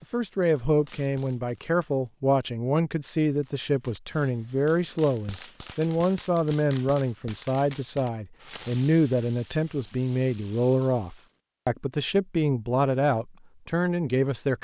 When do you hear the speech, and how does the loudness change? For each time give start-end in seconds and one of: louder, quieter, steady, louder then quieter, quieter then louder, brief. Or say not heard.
0.0-14.5 steady.